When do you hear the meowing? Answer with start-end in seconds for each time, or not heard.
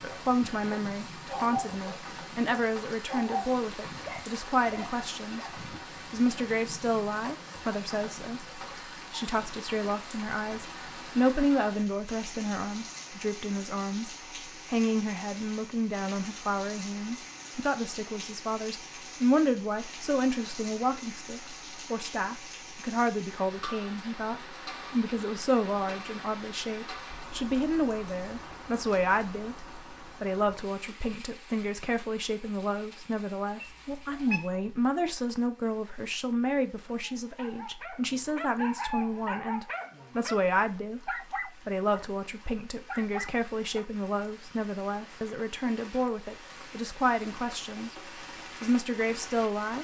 33.6-34.5.